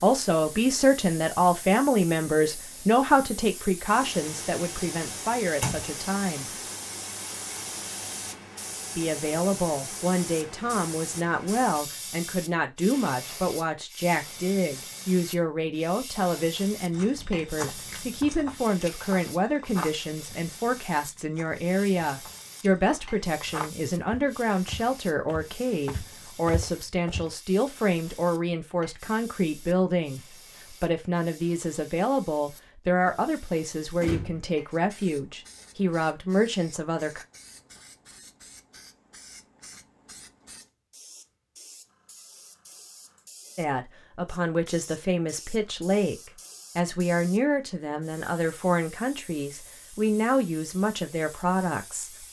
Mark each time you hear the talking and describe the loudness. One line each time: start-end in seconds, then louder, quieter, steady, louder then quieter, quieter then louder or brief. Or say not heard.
0.0-6.5 quieter
8.9-37.2 steady
43.5-52.2 steady.